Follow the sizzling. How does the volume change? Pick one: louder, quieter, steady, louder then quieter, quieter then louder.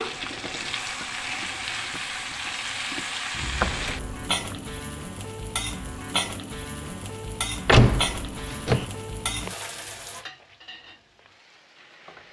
quieter.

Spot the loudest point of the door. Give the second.
8 s.